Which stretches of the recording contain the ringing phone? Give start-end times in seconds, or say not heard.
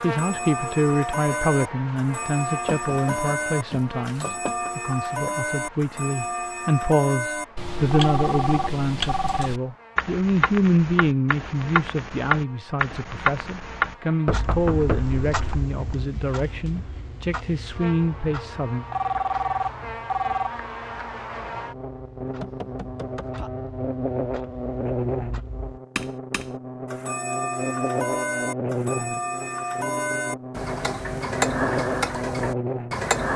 7.9-9.5, 18.9-20.5.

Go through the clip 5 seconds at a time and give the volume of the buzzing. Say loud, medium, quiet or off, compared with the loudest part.
medium, quiet, quiet, medium, loud, loud, loud.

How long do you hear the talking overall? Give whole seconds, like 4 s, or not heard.
19 s.